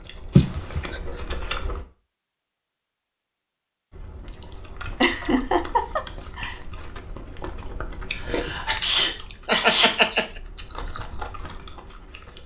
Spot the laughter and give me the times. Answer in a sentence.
You can hear the laughter from 0.3 to 1.0 s, from 5.0 to 6.6 s and from 9.4 to 10.2 s.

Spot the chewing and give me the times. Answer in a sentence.
You can hear the chewing from 0.0 to 1.9 s and from 3.9 to 12.4 s.